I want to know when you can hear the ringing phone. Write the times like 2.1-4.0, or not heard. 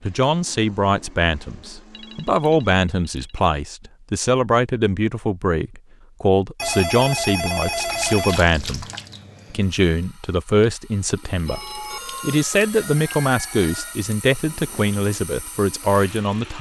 1.9-3.5, 6.5-8.5, 11.4-14.0.